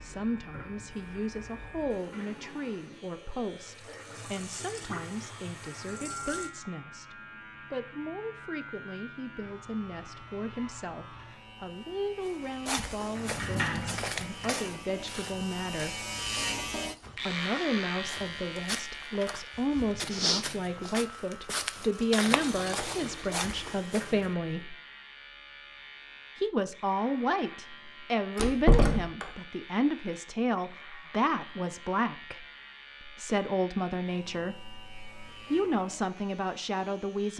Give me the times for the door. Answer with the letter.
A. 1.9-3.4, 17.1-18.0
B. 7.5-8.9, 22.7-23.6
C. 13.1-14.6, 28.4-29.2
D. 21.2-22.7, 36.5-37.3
C.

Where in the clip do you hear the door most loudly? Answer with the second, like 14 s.
29 s.